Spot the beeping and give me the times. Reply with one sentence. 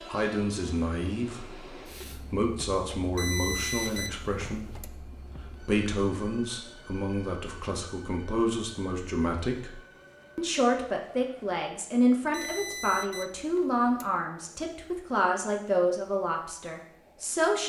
You can hear the beeping from 3.1 to 4.9 s and from 12.3 to 14.1 s.